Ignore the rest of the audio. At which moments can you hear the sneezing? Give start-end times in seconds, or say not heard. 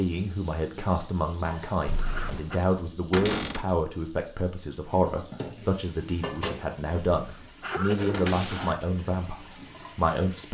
1.9-2.6, 7.2-8.8.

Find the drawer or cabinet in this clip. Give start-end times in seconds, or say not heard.
3.1-3.7, 8.1-8.7.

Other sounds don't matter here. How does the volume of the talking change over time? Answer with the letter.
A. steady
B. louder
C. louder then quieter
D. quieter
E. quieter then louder
A.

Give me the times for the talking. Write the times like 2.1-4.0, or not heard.
0.0-10.4.